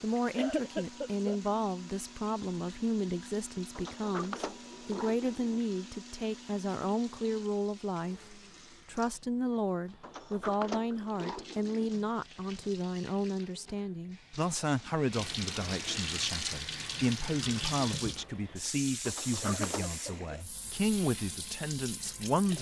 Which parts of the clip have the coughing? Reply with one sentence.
The coughing can be heard from 0.3 to 1.4 s and from 19.4 to 20.4 s.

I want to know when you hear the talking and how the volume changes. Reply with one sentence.
You can hear the talking from 0.0 to 22.5 s, at a steady volume.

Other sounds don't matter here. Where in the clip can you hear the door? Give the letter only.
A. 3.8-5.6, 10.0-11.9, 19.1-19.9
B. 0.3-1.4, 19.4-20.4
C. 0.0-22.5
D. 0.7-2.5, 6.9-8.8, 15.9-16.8
A.